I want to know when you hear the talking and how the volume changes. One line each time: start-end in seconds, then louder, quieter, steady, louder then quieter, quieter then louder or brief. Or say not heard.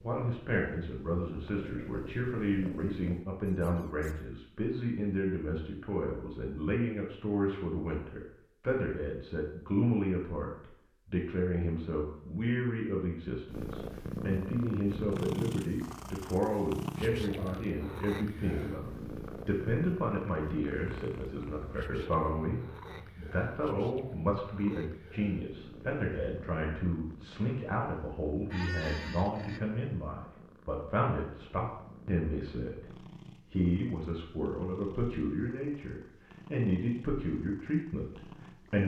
0.0-38.8 steady.